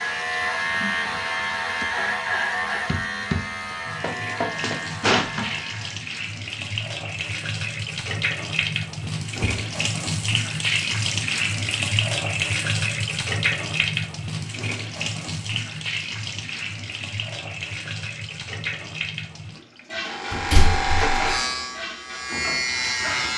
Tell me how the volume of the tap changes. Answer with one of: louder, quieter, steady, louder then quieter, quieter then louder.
louder then quieter.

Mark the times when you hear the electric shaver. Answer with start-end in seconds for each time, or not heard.
0.0-6.0, 20.0-23.3.